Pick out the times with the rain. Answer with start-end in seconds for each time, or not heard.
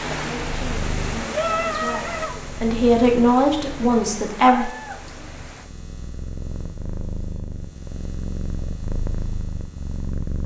0.0-5.7.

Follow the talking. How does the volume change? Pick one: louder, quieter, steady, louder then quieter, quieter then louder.
louder then quieter.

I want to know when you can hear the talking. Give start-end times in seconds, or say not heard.
0.1-4.7.